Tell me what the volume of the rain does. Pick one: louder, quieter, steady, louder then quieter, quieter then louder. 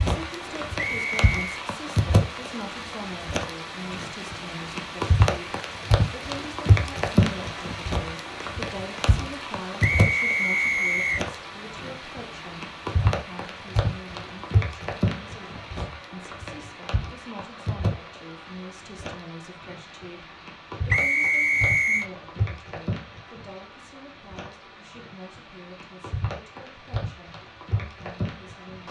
quieter.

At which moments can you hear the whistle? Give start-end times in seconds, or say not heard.
0.8-1.6, 9.8-11.2, 20.9-22.1.